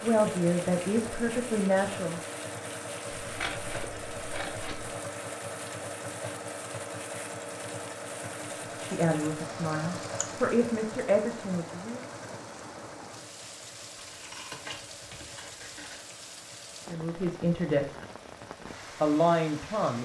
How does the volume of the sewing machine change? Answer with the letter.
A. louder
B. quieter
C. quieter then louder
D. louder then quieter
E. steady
B.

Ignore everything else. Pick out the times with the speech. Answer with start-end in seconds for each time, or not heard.
0.0-2.2, 8.8-12.1, 16.9-17.9, 19.0-19.9.